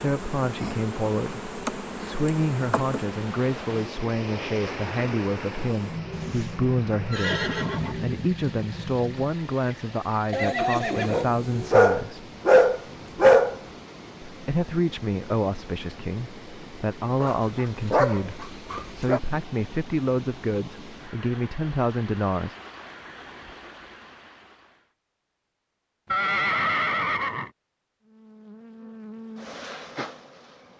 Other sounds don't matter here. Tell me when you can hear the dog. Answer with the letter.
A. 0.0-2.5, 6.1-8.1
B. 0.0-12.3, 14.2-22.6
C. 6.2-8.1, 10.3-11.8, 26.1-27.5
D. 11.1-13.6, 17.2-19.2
D.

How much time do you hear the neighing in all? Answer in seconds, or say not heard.
5 s.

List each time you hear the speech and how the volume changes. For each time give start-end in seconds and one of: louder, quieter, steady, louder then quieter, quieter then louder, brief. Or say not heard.
0.0-12.3 steady
14.2-22.6 steady.